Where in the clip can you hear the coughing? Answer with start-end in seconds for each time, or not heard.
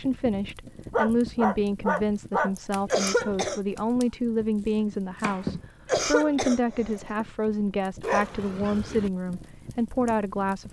2.9-3.6, 5.8-7.2.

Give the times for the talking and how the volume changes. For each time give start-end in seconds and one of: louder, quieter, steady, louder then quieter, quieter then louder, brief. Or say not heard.
0.0-10.6 steady.